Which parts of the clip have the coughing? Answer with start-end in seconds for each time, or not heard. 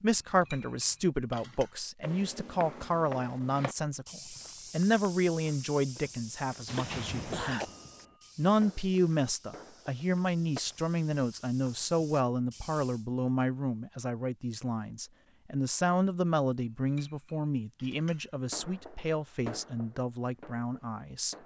6.8-7.7.